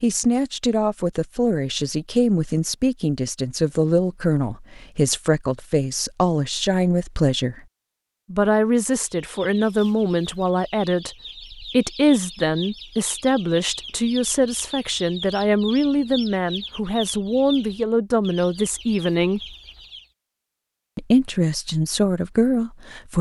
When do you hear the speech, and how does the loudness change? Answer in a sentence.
You can hear the speech from 0.0 to 7.6 s, at a steady volume; from 8.3 to 19.6 s, at a steady volume; and briefly from 20.9 to 23.1 s.